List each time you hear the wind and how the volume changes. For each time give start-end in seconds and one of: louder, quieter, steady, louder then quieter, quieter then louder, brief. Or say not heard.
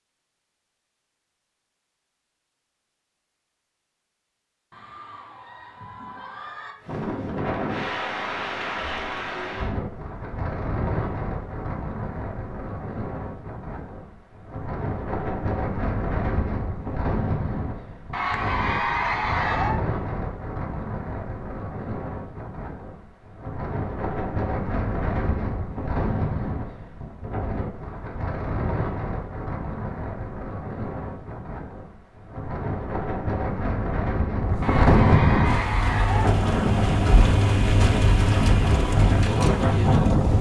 6.8-40.3 louder.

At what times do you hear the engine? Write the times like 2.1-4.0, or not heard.
35.5-40.3.